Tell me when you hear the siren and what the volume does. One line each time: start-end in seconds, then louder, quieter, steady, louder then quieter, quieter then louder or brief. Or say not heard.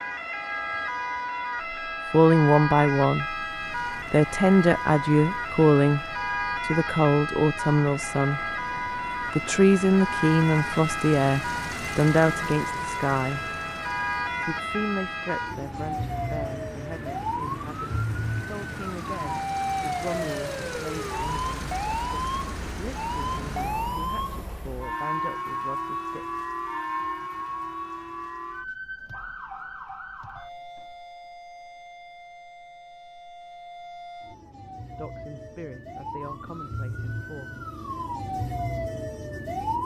0.0-39.8 quieter.